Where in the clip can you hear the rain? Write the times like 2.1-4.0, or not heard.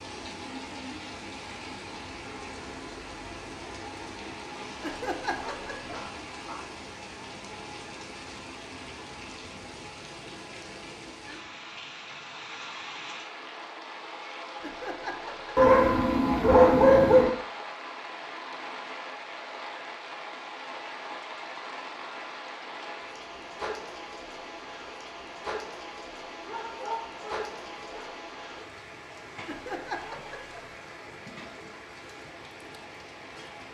0.0-33.6.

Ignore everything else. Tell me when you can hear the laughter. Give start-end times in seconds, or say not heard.
4.8-6.0, 14.6-15.7, 29.4-30.7.